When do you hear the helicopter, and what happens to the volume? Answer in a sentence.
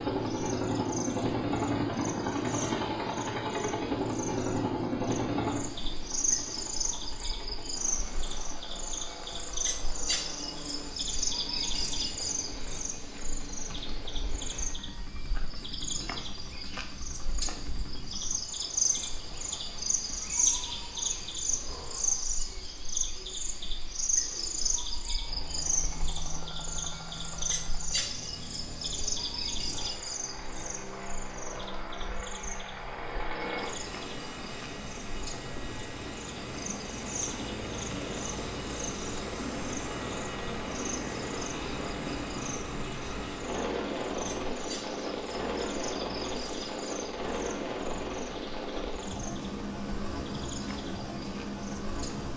You can hear the helicopter from 0.0 to 19.9 s, getting quieter; and from 25.2 to 52.3 s, getting louder.